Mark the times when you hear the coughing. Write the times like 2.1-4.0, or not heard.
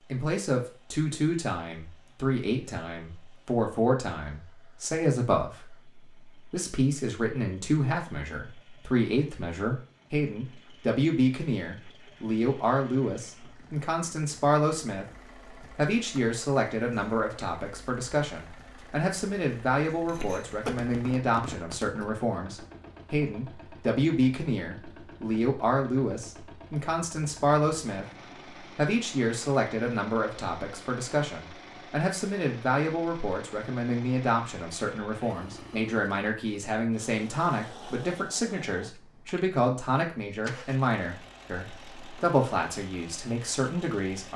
20.1-22.1.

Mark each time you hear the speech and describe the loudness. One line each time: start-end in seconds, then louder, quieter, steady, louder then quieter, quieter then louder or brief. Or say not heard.
0.1-44.3 steady.